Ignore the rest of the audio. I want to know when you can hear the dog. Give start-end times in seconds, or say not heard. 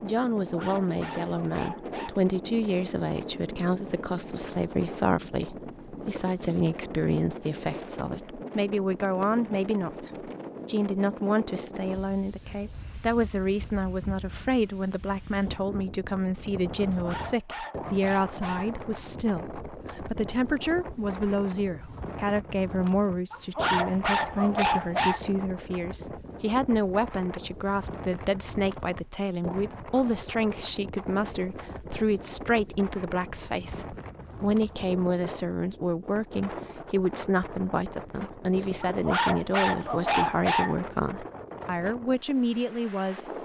0.5-2.1, 17.0-18.8, 23.3-25.2, 38.8-40.8.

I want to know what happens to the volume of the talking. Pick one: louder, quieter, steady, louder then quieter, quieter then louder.
steady.